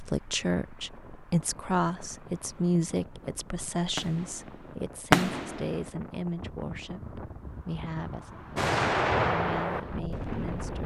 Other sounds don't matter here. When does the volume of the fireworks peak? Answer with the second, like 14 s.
5 s.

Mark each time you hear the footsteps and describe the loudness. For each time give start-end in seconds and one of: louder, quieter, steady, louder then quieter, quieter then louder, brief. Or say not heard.
not heard.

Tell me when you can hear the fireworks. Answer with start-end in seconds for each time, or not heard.
3.1-5.9, 8.6-10.8.